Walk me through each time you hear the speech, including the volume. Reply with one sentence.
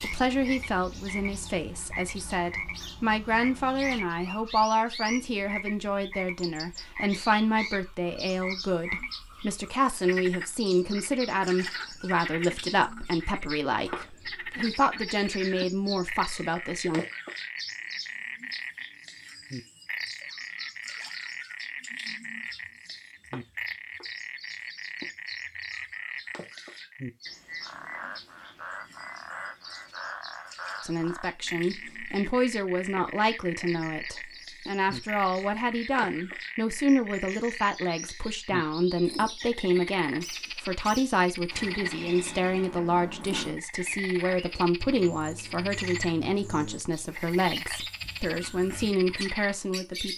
The speech can be heard from 0.0 to 17.1 s, at a steady volume; and from 30.8 to 50.1 s, at a steady volume.